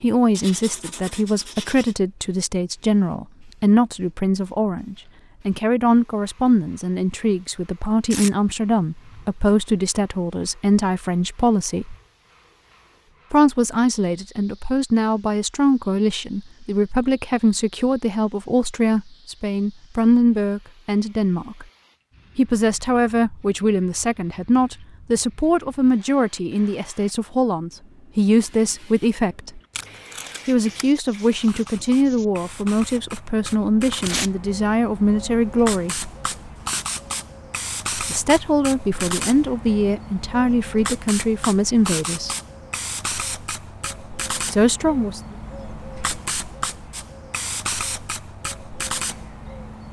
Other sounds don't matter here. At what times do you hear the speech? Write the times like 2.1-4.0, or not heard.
0.0-11.9, 13.3-21.6, 22.4-29.6, 30.4-36.1, 38.0-42.4, 44.4-45.2.